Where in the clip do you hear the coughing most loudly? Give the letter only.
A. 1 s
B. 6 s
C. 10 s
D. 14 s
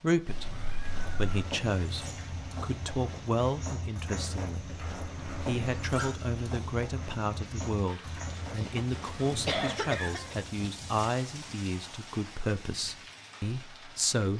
C.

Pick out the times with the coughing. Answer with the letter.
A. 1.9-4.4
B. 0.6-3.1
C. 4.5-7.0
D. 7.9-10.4
D.